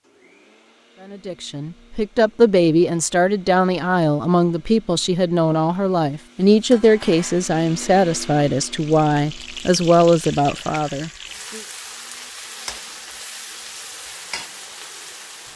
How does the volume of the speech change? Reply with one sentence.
The volume of the speech stays about the same.